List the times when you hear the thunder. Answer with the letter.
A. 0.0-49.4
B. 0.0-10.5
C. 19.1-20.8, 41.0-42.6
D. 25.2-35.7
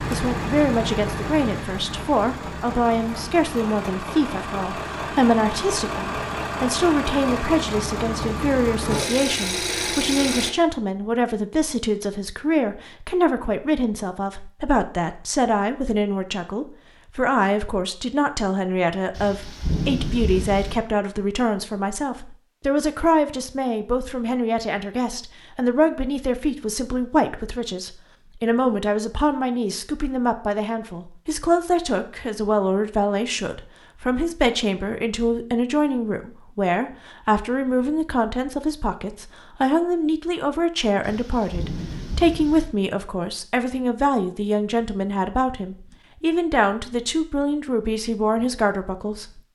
C.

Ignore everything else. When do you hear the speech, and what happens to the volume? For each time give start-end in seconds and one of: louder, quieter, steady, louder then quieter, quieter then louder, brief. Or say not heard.
0.0-49.4 steady.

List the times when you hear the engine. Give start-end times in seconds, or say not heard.
0.0-10.5.